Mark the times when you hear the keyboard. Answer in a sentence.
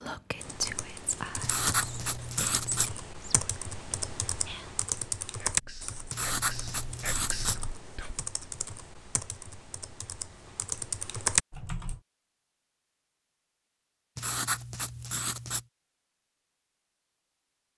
You can hear the keyboard from 0.4 to 12.0 s.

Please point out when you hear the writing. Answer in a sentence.
You can hear the writing from 1.4 to 2.9 s, from 6.1 to 7.5 s and from 14.2 to 15.7 s.